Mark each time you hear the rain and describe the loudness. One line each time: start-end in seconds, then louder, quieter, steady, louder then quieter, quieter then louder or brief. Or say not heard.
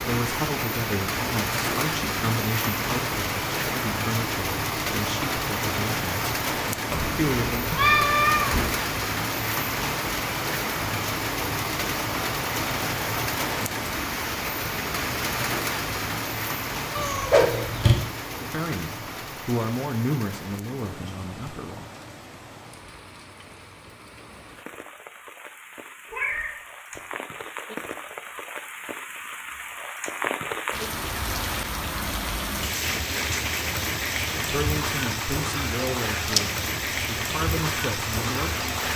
0.0-38.9 quieter then louder.